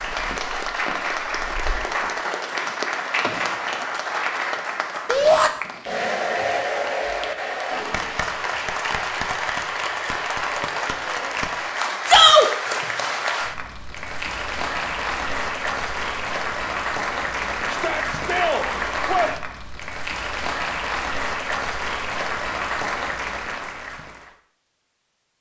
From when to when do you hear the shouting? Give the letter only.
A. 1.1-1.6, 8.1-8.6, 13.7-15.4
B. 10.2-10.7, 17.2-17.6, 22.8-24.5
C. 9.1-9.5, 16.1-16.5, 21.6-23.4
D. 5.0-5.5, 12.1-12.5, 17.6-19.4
D.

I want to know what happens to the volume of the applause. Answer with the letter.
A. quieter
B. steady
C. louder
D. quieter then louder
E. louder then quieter
B.